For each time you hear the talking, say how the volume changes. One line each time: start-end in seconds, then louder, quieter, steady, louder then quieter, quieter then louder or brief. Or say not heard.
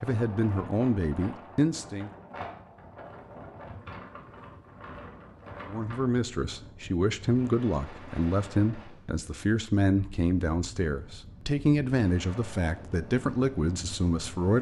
0.0-2.1 brief
5.7-14.5 steady.